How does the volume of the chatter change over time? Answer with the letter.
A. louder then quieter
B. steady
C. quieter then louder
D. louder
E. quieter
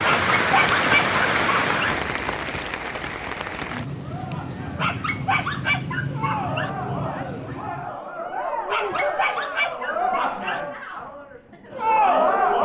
D.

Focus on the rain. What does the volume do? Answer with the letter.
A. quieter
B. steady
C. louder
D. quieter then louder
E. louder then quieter
A.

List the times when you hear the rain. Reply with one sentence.
The rain can be heard from 0.0 to 8.0 s.